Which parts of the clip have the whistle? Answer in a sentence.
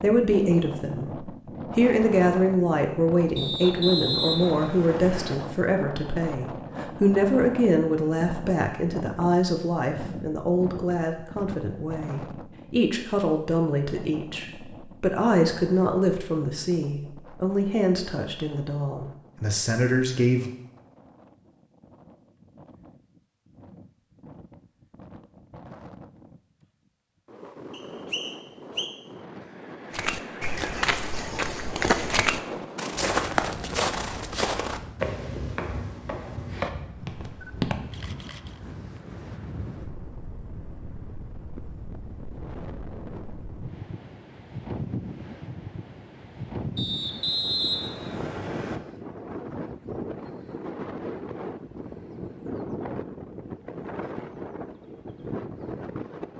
The whistle can be heard from 3.4 to 5.3 s, from 27.7 to 28.9 s and from 46.8 to 48.8 s.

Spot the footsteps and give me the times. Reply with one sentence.
The footsteps can be heard from 29.9 to 37.8 s.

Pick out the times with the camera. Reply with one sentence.
The camera can be heard from 37.4 to 38.6 s.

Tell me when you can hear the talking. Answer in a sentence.
You can hear the talking from 0.0 to 20.5 s.